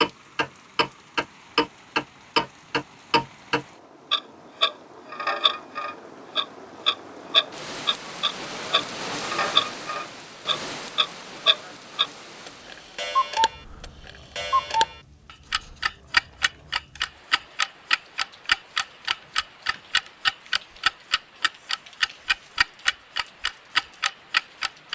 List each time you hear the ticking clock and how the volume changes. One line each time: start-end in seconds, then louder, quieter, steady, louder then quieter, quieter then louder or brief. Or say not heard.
0.0-24.9 steady.